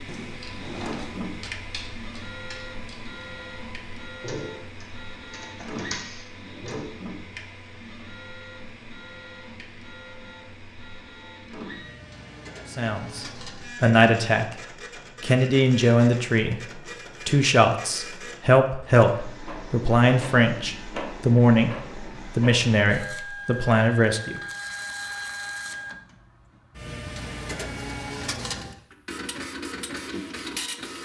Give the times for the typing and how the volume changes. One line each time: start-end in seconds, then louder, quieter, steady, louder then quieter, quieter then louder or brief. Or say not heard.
0.3-7.0 quieter then louder.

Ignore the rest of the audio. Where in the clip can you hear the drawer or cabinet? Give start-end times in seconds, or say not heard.
0.1-1.3.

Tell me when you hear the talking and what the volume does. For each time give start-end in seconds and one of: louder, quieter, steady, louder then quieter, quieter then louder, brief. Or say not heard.
12.7-14.6 brief
15.2-24.4 steady.